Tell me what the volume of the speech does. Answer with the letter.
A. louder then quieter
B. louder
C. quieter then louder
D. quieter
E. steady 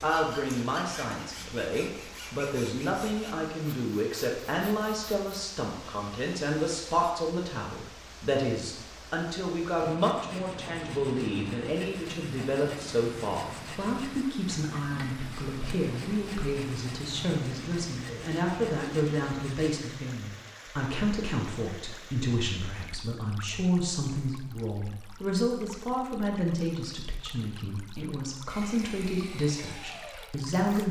E.